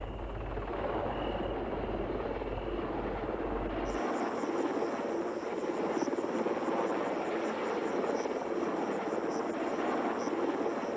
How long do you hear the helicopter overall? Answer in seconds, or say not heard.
11 s.